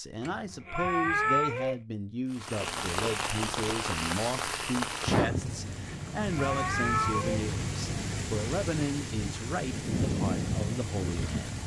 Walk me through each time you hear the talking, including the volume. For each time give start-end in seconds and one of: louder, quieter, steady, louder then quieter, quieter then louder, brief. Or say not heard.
0.0-11.6 steady.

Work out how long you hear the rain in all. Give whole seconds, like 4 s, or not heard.
9 s.